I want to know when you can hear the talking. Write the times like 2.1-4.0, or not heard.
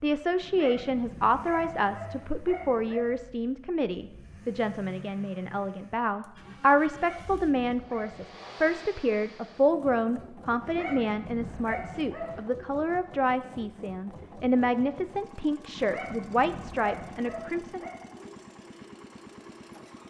0.0-17.9.